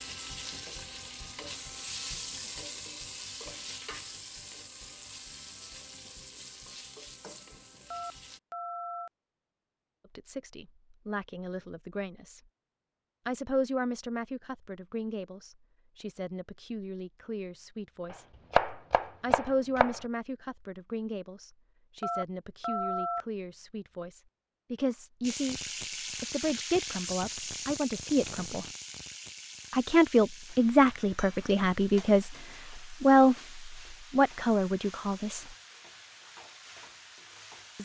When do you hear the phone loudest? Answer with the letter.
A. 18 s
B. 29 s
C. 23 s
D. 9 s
C.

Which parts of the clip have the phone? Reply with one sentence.
The phone can be heard from 7.9 to 9.1 s and from 22.0 to 23.2 s.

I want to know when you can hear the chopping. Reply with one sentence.
The chopping can be heard from 18.1 to 20.0 s.